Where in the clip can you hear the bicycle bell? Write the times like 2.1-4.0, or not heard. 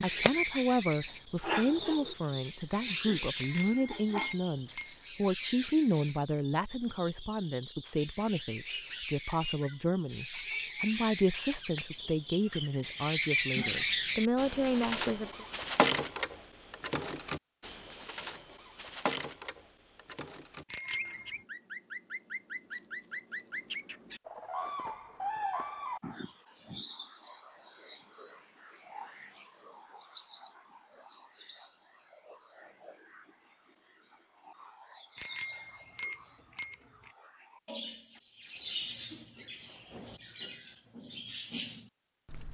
3.4-5.0, 20.7-21.4, 35.1-37.1.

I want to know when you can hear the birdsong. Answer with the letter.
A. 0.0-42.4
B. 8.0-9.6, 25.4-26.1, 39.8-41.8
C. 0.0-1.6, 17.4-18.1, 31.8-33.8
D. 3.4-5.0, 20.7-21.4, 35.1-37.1
A.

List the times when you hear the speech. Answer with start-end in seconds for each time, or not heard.
0.0-15.4.